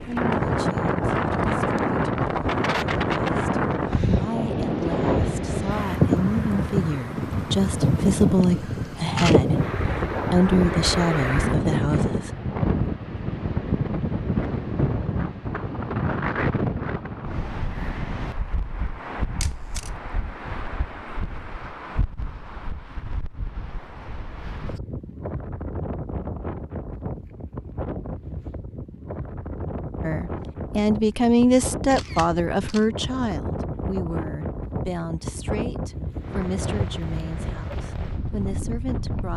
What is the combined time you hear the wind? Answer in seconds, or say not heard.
39 s.